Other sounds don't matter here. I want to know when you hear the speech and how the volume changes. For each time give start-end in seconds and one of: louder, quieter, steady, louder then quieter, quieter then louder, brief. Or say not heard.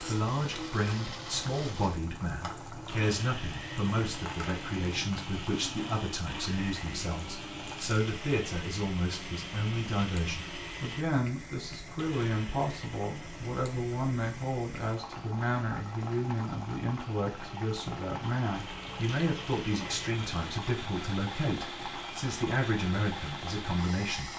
0.0-24.3 steady.